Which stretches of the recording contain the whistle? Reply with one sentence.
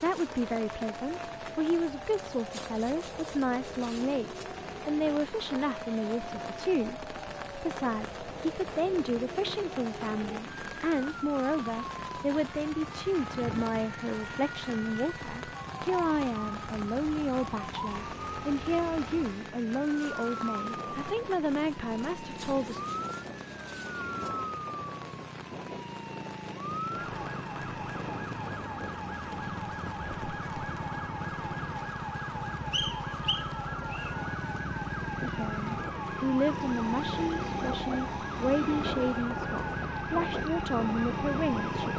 You can hear the whistle from 32.7 to 34.1 s.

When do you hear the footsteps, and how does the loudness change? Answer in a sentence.
The footsteps can't be heard in this clip.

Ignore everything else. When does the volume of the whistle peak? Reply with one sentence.
The loudest moment of the whistle is at 33 seconds.